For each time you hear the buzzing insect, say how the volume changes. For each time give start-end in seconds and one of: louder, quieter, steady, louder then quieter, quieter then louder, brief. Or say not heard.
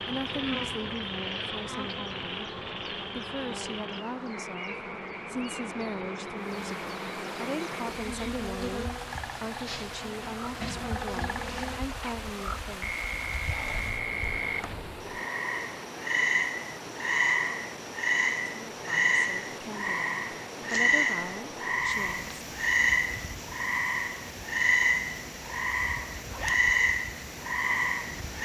0.0-15.1 quieter.